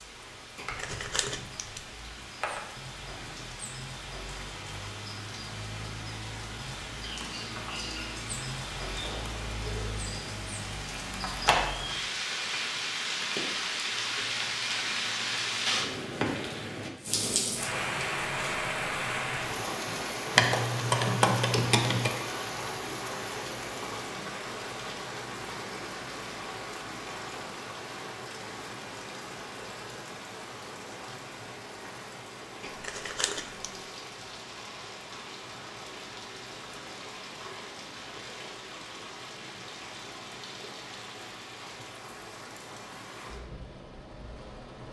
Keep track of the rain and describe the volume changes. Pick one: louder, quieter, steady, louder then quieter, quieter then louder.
louder then quieter.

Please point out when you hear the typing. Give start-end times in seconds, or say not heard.
20.4-22.1.